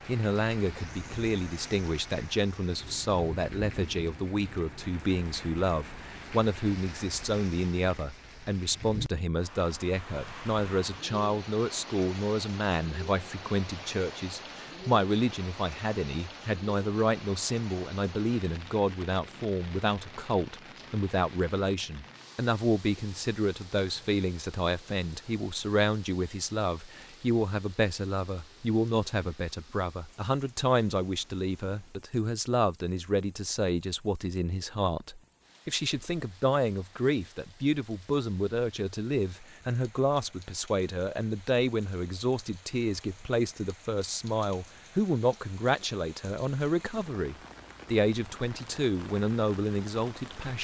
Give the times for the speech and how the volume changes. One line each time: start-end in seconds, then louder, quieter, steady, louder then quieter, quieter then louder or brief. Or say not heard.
0.1-50.5 steady.